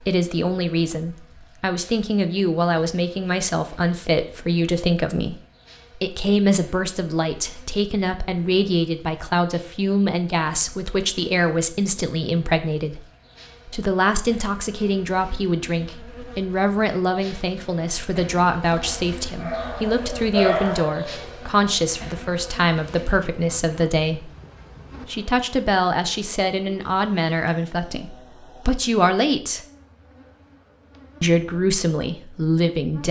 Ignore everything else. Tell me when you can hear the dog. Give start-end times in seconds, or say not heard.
18.8-21.4.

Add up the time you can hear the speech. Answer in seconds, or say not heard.
30 s.